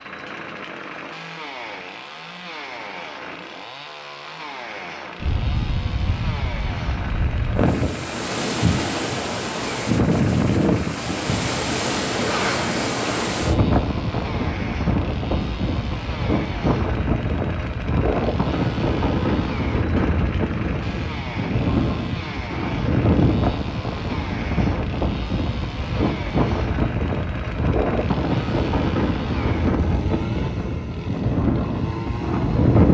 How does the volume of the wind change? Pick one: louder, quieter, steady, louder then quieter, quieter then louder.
steady.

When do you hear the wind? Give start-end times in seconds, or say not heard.
5.2-32.8.